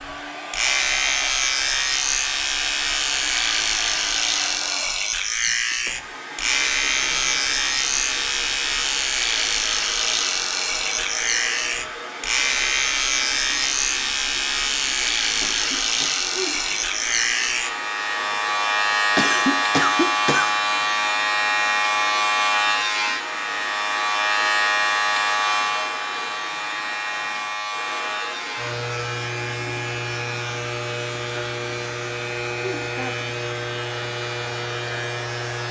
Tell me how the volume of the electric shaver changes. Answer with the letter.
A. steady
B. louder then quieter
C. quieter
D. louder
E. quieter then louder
C.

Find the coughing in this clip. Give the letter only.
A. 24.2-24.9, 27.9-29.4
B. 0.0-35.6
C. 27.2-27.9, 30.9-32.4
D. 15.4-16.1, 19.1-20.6
D.